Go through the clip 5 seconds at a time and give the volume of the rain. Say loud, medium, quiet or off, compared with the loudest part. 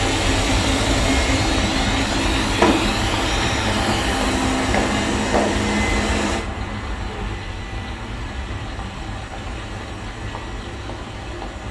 loud, medium, medium.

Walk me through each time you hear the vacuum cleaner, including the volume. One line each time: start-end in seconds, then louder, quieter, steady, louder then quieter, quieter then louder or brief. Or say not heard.
0.0-11.6 quieter.